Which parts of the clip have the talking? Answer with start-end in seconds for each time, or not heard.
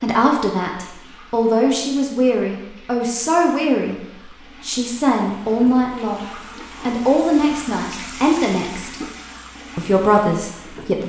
0.0-6.2, 6.8-9.0, 9.8-11.0.